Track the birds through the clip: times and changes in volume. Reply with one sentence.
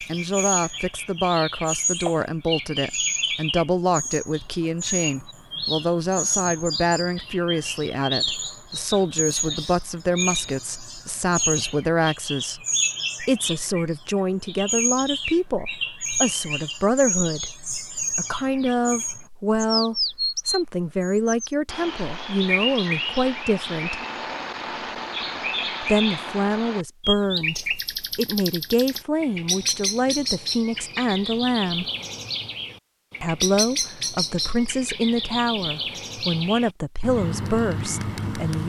You can hear the birds from 0.0 to 38.6 s, at a steady volume.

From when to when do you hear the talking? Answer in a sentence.
You can hear the talking from 0.0 to 24.0 s, from 25.8 to 31.9 s and from 33.2 to 38.6 s.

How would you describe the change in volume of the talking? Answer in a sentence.
The loudness of the talking stays about the same.